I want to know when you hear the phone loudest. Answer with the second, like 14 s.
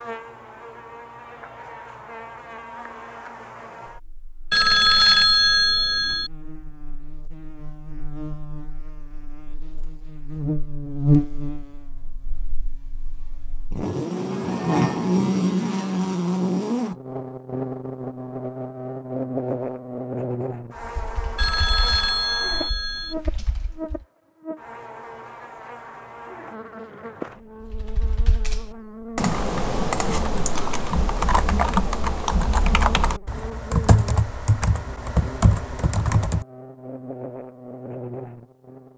5 s.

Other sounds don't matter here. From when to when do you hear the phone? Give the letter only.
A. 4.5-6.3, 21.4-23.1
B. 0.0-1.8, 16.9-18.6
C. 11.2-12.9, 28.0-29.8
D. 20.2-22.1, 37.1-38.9
A.